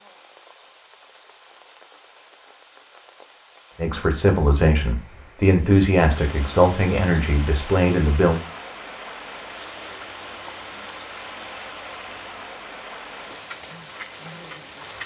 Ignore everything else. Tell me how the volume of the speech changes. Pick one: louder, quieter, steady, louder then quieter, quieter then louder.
steady.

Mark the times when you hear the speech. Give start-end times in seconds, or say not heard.
3.8-8.4.